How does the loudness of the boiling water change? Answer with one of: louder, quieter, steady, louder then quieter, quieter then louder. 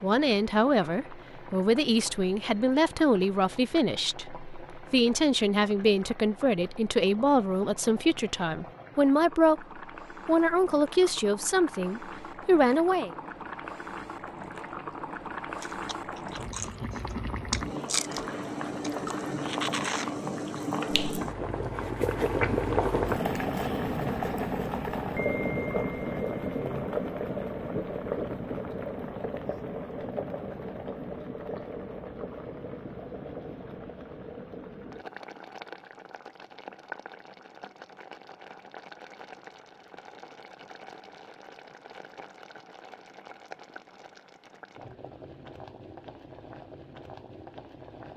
louder then quieter.